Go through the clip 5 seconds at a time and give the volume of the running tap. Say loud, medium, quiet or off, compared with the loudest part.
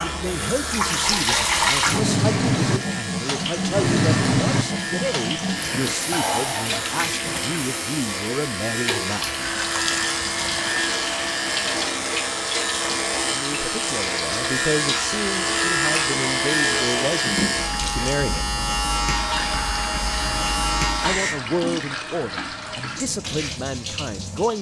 loud, medium, medium, medium, medium.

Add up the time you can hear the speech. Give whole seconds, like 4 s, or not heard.
18 s.